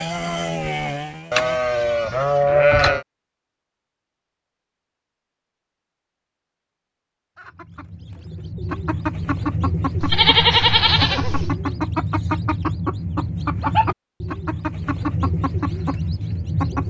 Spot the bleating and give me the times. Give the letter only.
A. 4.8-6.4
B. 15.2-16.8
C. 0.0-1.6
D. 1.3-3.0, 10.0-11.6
D.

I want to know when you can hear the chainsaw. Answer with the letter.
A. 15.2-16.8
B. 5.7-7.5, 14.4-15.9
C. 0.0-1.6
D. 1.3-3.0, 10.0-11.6
C.